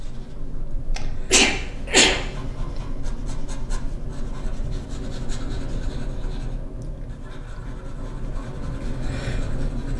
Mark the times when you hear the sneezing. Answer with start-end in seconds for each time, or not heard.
1.3-2.2.